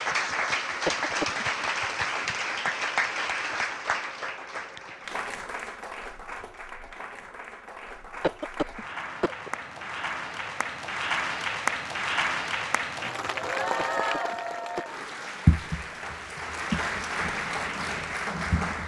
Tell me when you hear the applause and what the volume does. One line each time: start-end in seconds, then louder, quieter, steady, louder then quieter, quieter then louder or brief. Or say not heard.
0.0-18.8 quieter then louder.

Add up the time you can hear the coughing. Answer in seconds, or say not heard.
3 s.